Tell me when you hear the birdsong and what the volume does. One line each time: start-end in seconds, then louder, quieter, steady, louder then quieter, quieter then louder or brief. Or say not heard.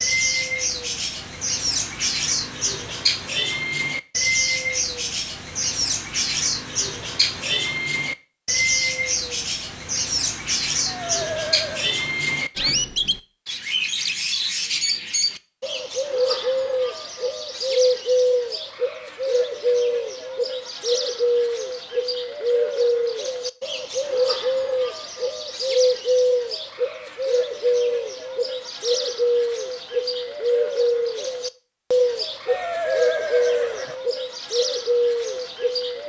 0.0-36.0 steady.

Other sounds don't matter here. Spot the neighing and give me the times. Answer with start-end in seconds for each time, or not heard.
10.8-11.9, 32.5-34.0.